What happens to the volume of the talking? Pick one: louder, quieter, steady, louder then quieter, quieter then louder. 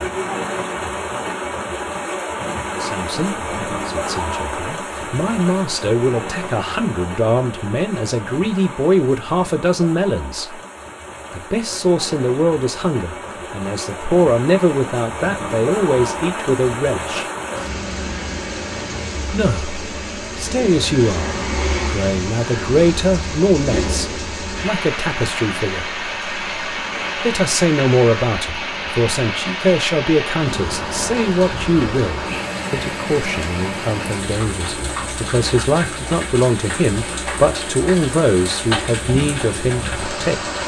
steady.